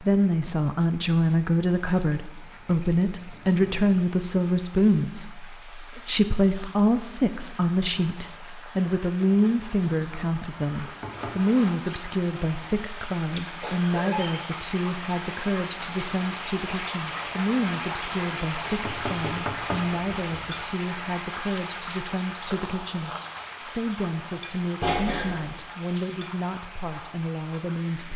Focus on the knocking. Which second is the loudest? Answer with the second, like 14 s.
20 s.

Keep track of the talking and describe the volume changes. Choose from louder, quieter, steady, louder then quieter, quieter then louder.
quieter.